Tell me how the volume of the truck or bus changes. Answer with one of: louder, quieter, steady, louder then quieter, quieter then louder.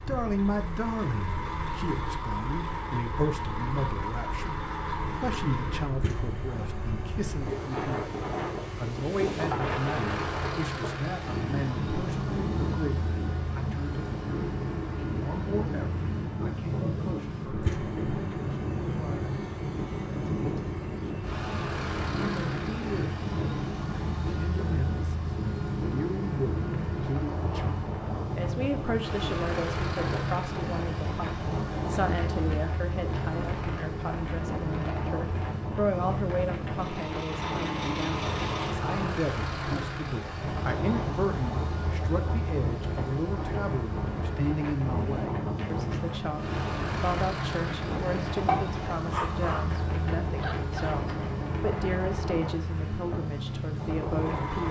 steady.